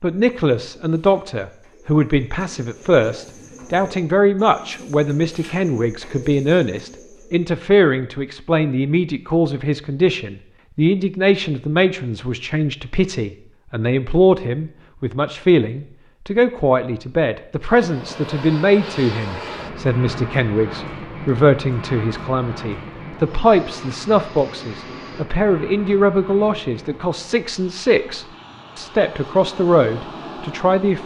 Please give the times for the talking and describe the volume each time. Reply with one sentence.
The talking can be heard from 0.0 to 31.0 s, at a steady volume.